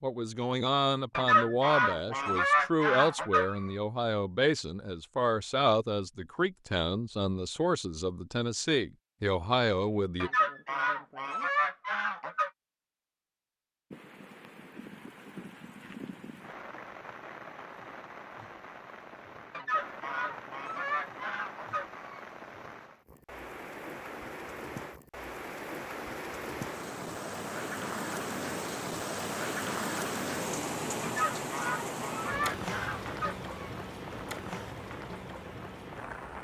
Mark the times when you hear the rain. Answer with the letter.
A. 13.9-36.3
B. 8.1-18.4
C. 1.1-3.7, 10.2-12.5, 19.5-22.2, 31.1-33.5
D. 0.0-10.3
A.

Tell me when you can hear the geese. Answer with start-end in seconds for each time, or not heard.
1.1-3.7, 10.2-12.5, 19.5-22.2, 31.1-33.5.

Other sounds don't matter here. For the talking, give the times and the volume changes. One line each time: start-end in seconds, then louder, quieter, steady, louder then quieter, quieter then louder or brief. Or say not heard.
0.0-10.3 steady.